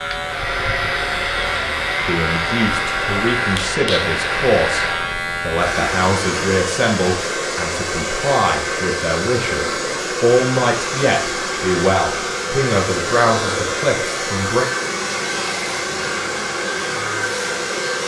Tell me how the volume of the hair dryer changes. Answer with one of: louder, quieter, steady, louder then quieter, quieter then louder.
steady.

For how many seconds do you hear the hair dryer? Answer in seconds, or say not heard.
18 s.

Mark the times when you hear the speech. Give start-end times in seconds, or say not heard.
2.0-14.7.